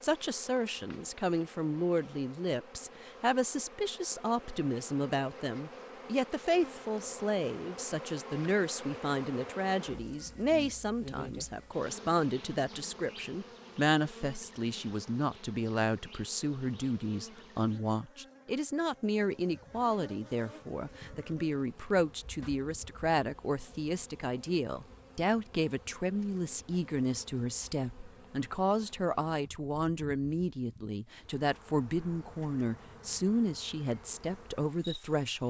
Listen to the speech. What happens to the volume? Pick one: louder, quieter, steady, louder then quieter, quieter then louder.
steady.